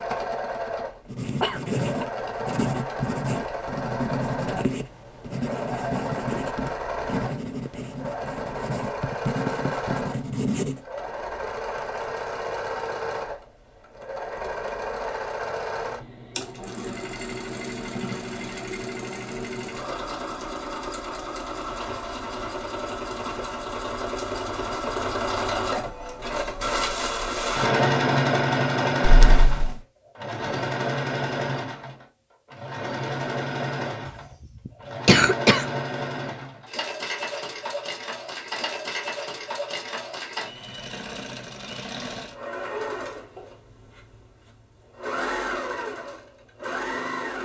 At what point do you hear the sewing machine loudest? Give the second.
28 s.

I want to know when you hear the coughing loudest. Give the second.
35 s.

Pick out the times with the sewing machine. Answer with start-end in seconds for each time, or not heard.
0.0-47.4.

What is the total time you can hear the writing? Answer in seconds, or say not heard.
10 s.